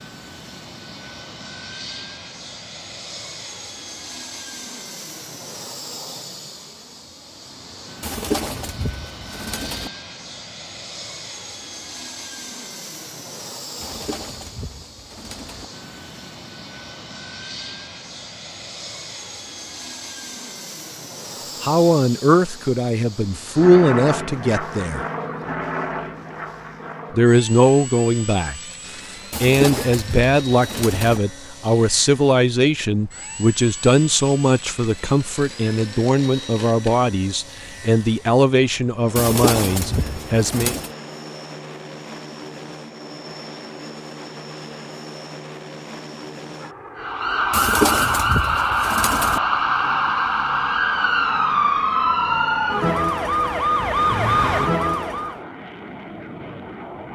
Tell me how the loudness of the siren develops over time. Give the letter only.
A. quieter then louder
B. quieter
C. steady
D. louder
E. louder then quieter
C.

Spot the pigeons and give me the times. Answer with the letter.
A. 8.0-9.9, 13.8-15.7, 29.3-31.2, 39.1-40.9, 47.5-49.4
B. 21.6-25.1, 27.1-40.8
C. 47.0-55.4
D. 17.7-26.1
A.